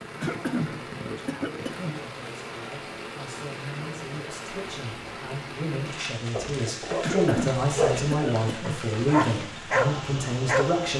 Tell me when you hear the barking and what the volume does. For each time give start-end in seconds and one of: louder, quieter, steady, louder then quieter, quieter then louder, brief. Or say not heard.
6.3-10.9 quieter then louder.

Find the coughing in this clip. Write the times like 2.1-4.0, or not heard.
0.2-2.0, 7.0-8.8.